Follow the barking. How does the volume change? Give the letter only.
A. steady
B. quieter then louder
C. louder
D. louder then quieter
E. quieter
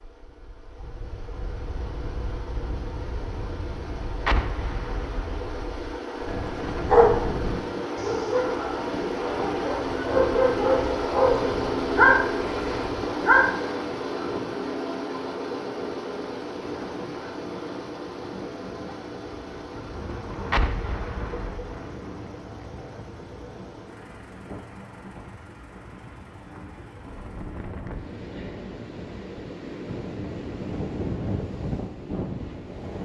B.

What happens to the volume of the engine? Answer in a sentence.
The loudness of the engine goes up, then down.